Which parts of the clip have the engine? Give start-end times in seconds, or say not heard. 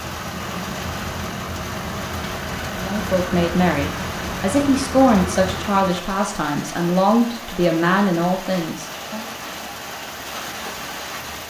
0.0-6.0.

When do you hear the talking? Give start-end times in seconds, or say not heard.
2.8-9.2.